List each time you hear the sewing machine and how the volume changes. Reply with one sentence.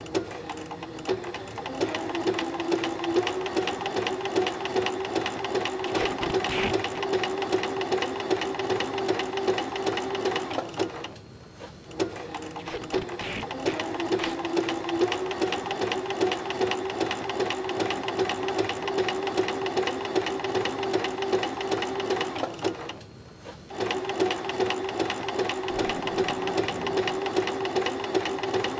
You can hear the sewing machine from 0.0 to 28.7 s, at a steady volume.